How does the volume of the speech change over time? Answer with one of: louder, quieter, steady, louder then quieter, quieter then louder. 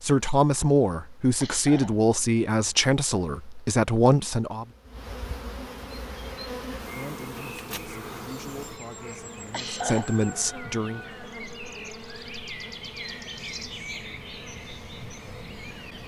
quieter then louder.